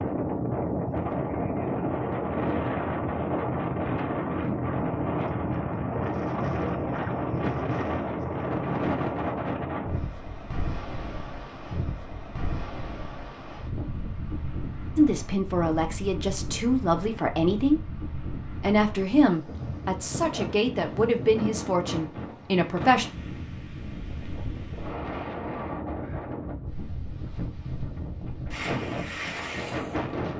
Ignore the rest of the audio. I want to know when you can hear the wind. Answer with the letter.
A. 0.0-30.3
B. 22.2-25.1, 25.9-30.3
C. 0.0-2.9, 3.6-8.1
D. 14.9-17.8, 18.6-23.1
A.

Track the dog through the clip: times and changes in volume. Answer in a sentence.
The dog can't be heard in this clip.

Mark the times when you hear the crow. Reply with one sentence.
You can't hear the crow here.